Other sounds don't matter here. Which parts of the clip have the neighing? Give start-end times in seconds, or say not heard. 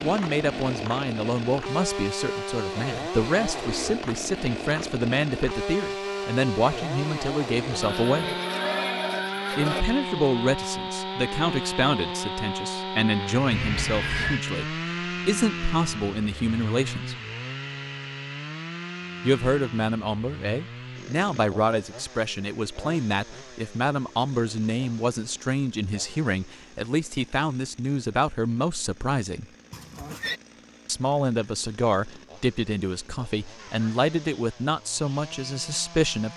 7.8-9.8, 13.5-14.4, 29.7-30.4.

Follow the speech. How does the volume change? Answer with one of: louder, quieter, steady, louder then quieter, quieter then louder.
steady.